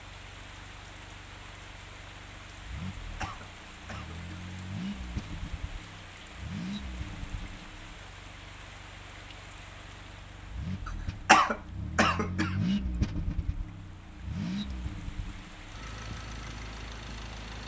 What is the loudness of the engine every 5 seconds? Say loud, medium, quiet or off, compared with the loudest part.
medium, medium, loud, medium.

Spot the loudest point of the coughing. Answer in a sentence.
The volume of the coughing peaks at 11 seconds.